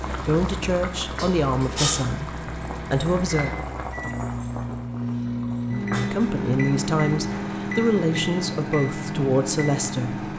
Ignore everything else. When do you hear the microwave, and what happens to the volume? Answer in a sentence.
The microwave can be heard from 0.0 to 10.3 s, getting louder.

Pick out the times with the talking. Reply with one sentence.
You can hear the talking from 0.1 to 3.5 s and from 6.0 to 10.3 s.